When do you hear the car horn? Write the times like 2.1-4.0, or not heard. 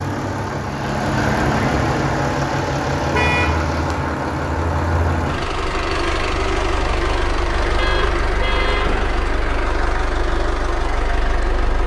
3.1-3.6, 7.8-8.9.